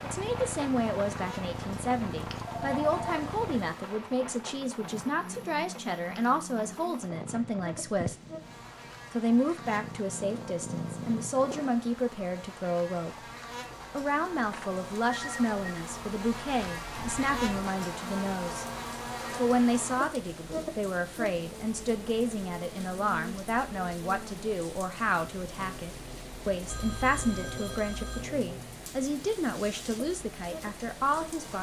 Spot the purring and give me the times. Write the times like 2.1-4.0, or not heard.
0.0-3.7, 7.0-11.8.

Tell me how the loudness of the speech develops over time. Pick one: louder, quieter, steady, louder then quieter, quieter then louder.
steady.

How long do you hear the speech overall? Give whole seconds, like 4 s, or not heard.
29 s.